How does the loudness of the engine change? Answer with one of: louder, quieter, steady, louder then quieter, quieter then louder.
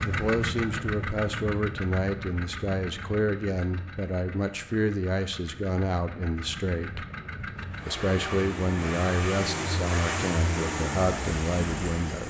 quieter then louder.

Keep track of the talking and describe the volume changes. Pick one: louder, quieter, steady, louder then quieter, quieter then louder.
steady.